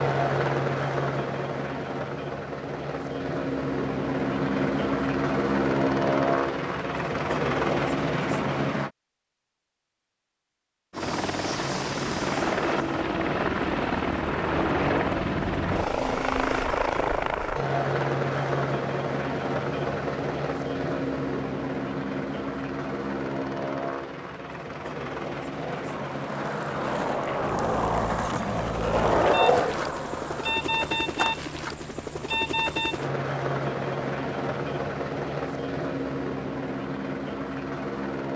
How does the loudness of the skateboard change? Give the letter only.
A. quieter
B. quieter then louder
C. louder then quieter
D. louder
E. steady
C.